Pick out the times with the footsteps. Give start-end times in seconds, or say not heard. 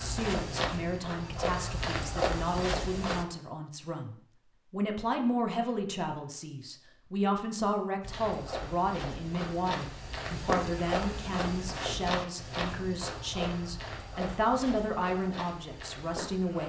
0.0-3.2, 8.0-16.6.